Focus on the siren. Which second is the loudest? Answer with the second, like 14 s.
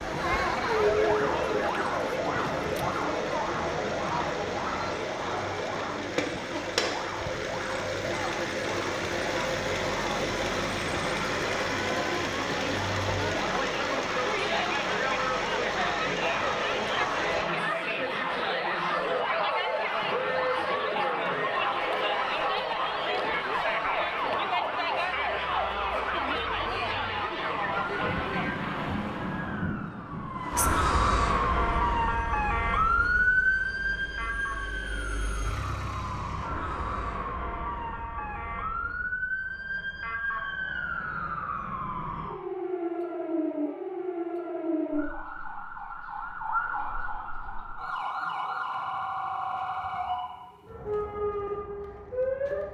33 s.